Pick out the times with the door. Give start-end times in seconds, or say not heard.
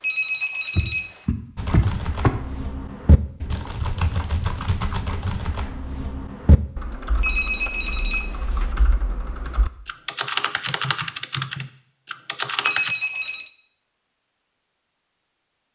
0.8-2.3.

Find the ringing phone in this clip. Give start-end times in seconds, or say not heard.
0.0-1.2, 7.2-8.8, 12.6-13.5.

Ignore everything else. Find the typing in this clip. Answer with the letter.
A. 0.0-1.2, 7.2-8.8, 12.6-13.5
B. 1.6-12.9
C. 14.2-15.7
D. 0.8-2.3
B.